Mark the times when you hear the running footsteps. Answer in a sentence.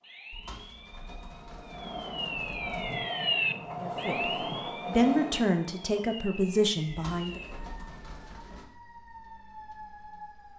The running footsteps can't be heard in this clip.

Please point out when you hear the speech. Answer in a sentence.
The speech can be heard from 3.8 to 7.4 s.